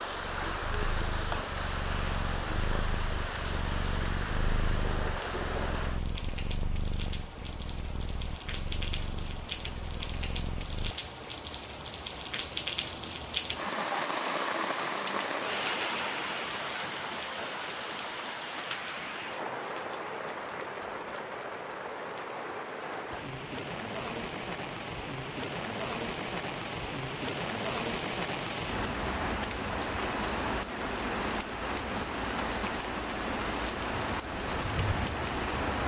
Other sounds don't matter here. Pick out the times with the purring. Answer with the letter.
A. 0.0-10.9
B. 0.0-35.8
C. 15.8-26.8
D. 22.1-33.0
A.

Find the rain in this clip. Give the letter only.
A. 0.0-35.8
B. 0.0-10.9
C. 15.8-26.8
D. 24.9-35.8
A.